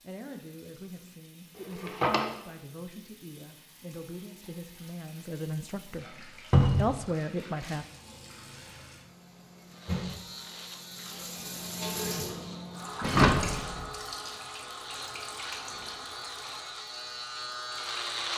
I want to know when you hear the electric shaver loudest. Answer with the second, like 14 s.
18 s.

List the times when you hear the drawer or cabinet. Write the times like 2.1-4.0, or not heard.
1.8-2.2, 6.5-6.9, 13.0-13.8.